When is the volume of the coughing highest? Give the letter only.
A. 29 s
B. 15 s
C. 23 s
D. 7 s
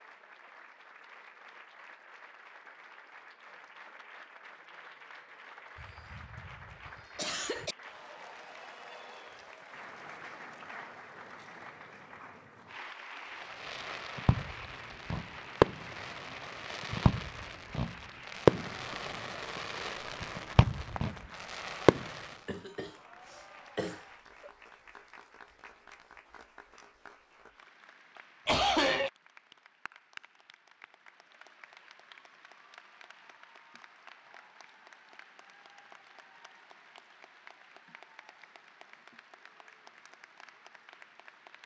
A.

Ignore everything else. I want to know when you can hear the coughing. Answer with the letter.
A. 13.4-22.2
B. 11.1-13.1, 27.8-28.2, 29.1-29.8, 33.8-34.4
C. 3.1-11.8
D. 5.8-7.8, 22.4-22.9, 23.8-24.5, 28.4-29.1
D.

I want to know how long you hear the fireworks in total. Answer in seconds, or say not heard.
9 s.